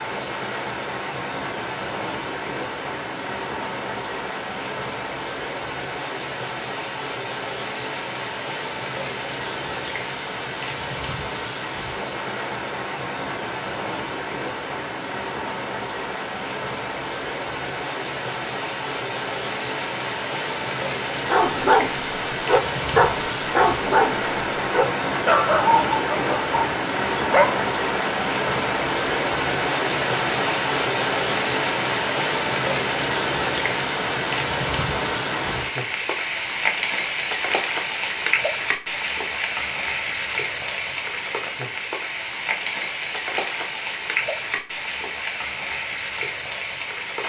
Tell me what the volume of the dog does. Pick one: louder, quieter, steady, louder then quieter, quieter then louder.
quieter.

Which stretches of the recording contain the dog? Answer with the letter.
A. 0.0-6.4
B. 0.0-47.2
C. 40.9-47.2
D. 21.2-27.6
D.